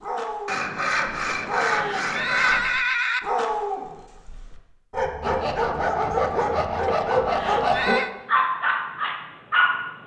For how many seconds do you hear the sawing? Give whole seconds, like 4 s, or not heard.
5 s.